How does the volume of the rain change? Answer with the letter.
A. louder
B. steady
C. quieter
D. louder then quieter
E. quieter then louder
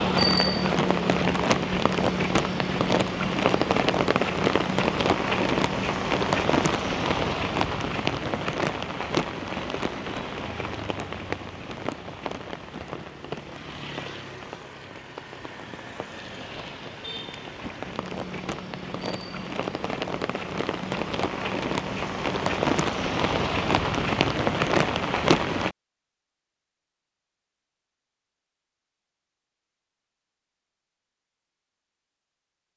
E.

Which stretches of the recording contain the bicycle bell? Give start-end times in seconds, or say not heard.
0.1-0.7, 19.0-19.5.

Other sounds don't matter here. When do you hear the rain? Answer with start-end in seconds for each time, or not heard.
0.0-25.8.